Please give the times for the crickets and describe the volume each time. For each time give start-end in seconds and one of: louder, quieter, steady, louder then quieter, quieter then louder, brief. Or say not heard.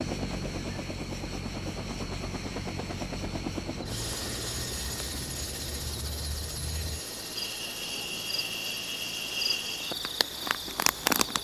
0.0-11.4 louder.